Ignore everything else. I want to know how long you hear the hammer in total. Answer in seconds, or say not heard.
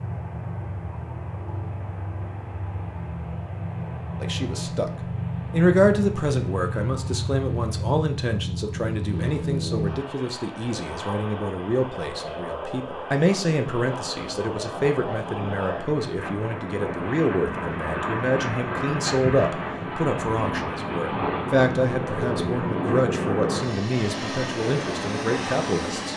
not heard.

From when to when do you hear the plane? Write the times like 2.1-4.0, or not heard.
0.0-26.1.